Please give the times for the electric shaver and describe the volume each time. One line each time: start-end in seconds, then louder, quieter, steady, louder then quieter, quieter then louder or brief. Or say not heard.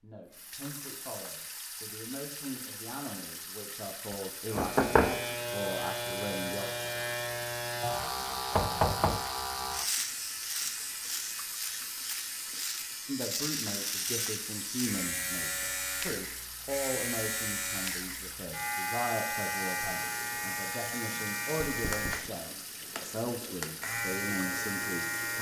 4.5-25.3 steady.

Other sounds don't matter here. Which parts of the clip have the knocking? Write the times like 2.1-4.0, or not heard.
4.5-5.2, 8.5-9.2, 21.6-22.3.